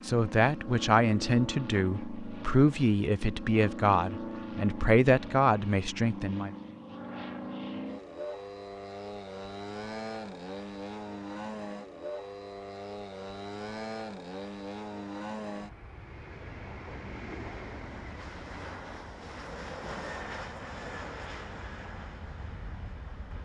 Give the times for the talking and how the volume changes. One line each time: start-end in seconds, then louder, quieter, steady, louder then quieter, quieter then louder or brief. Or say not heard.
0.0-6.5 steady.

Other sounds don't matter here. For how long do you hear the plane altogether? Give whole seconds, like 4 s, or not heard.
23 s.